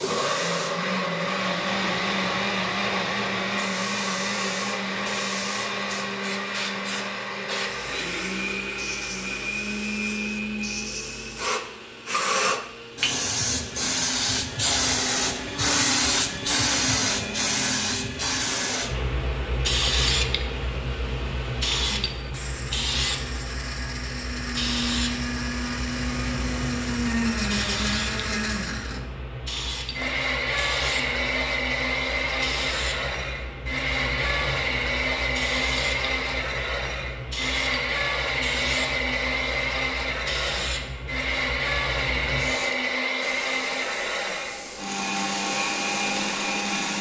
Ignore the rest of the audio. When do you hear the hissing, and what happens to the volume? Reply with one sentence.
You can hear the hissing from 0.0 to 46.9 s, getting louder then quieter.